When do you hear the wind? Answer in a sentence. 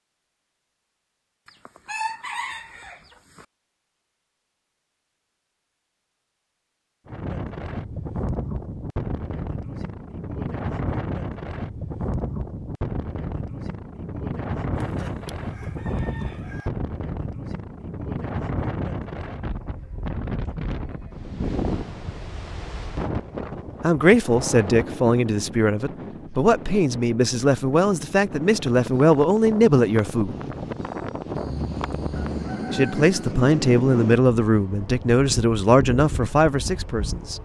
The wind can be heard from 7.0 to 37.3 s.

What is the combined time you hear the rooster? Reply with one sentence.
You can hear the rooster for 6 seconds altogether.